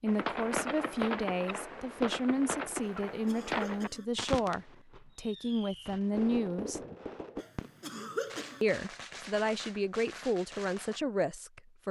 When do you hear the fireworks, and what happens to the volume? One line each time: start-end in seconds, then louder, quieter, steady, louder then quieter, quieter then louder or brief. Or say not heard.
0.1-11.0 quieter.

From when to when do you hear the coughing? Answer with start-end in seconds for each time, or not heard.
2.8-4.0, 7.3-8.6.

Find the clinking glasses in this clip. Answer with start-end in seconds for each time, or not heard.
not heard.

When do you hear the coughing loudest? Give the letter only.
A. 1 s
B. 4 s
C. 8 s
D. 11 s
C.